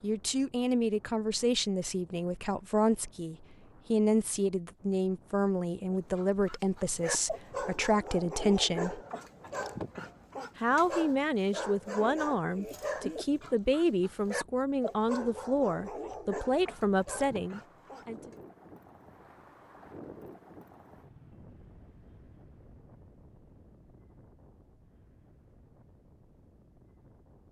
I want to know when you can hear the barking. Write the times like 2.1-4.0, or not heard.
5.9-18.4.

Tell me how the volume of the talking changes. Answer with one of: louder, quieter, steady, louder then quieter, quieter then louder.
steady.